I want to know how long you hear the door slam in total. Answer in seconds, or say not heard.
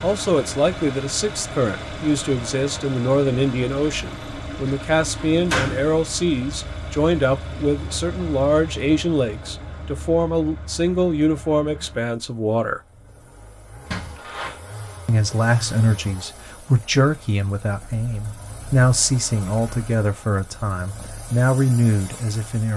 2 s.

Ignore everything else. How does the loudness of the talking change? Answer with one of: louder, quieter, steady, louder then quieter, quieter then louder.
steady.